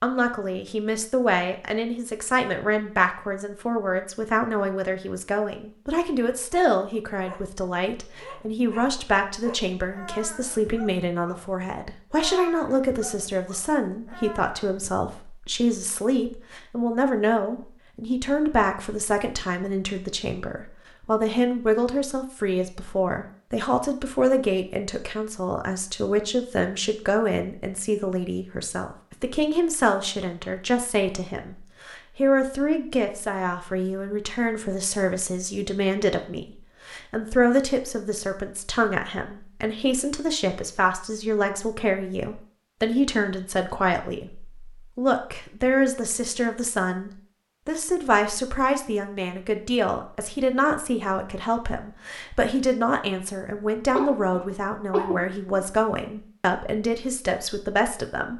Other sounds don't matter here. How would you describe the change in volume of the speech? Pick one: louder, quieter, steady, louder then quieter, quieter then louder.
steady.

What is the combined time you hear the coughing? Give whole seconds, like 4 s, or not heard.
2 s.